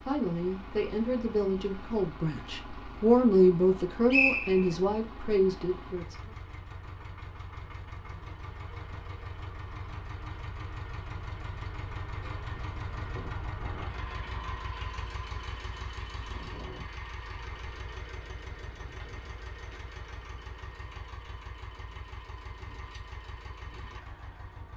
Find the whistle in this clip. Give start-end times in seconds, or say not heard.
4.1-4.8.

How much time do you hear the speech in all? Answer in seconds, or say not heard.
6 s.